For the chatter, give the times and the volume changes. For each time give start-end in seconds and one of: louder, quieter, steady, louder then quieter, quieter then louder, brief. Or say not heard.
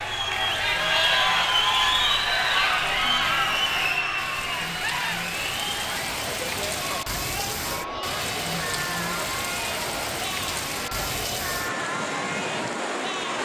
0.0-13.4 quieter.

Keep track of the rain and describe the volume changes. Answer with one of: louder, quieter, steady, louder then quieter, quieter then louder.
louder.